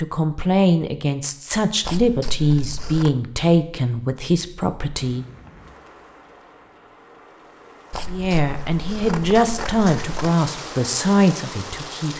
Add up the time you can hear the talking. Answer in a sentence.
The talking can be heard for 9 seconds in total.